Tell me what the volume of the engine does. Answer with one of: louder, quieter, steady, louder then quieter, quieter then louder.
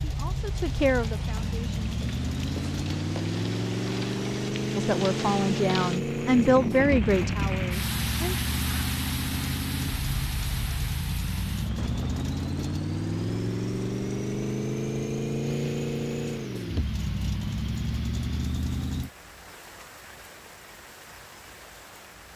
steady.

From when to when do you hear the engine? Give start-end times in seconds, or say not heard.
0.0-19.1.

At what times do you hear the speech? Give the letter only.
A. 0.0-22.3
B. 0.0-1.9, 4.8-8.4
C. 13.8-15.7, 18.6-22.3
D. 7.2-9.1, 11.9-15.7
B.